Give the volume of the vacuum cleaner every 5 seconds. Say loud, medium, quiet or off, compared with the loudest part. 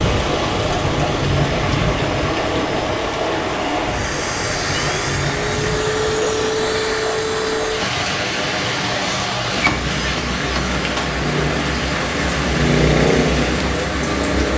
loud, loud, medium.